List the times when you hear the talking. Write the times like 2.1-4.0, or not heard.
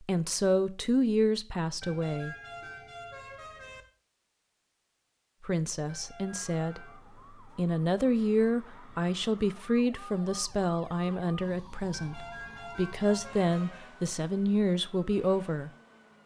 0.0-2.4, 5.4-6.8, 7.5-15.7.